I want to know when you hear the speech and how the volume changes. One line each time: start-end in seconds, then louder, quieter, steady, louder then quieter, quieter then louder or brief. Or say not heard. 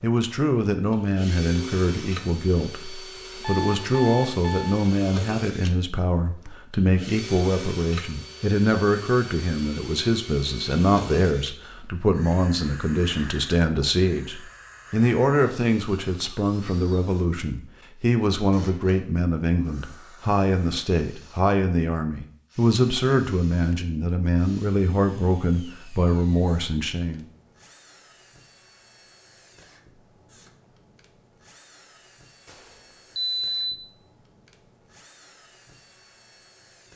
0.0-27.2 steady.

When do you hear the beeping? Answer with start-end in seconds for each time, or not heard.
3.4-4.8, 32.5-33.5.